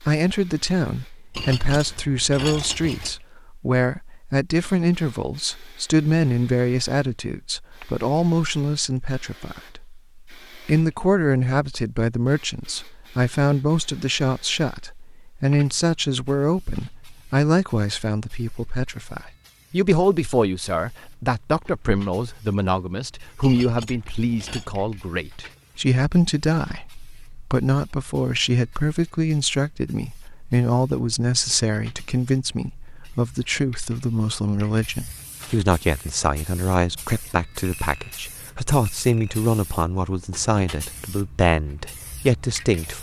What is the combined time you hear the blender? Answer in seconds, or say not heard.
not heard.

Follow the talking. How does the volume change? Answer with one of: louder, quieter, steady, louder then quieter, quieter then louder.
steady.